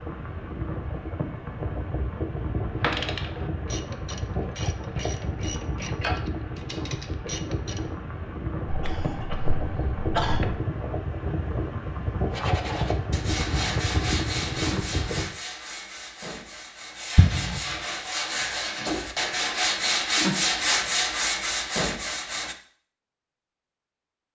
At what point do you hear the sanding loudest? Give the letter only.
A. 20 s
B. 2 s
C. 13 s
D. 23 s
A.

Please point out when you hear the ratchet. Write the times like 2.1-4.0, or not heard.
2.8-7.9.